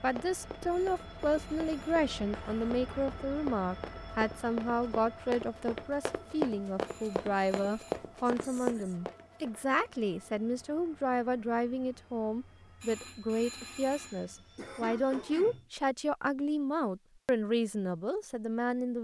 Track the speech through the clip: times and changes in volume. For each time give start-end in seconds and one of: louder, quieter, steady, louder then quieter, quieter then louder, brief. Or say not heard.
0.0-18.9 steady.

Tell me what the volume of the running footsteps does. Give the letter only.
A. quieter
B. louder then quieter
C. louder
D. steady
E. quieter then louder
C.